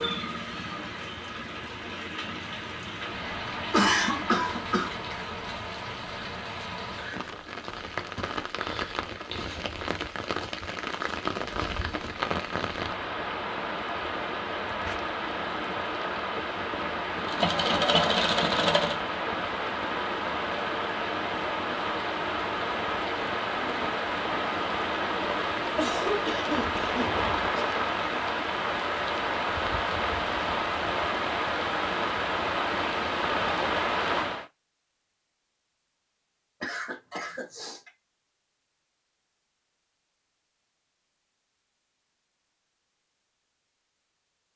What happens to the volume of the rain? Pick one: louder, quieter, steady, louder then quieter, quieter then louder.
louder.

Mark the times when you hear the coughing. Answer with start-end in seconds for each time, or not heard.
3.7-4.9, 25.8-27.8, 36.6-37.9.